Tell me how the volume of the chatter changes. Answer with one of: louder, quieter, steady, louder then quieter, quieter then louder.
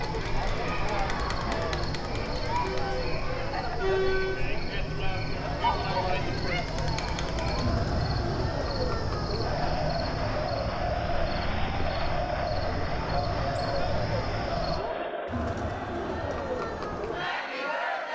steady.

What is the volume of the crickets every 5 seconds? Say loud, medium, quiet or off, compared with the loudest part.
loud, loud, loud, off.